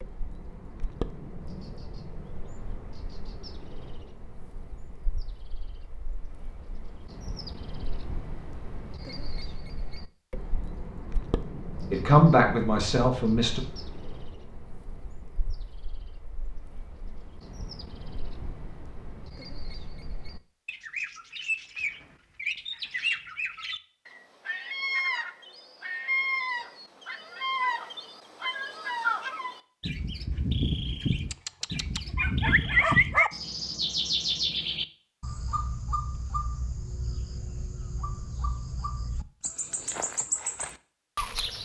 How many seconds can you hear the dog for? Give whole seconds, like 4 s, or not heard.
2 s.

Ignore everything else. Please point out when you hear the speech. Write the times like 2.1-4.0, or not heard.
11.9-13.6.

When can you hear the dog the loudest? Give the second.
33 s.